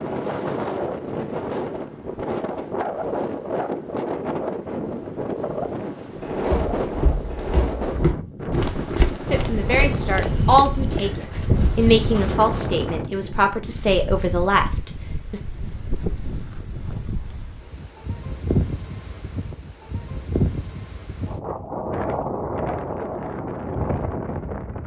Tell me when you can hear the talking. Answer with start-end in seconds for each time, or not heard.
9.3-15.4.